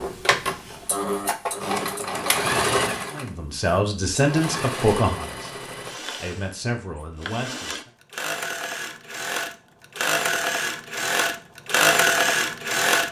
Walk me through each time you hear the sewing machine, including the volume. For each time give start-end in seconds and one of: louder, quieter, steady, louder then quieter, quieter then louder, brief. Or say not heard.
0.0-13.0 quieter then louder.